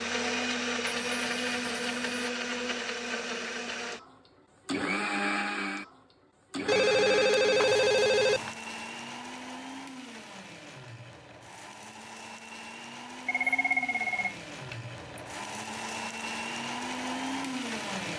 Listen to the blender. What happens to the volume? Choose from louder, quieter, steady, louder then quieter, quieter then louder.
quieter then louder.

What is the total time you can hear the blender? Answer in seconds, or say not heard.
18 s.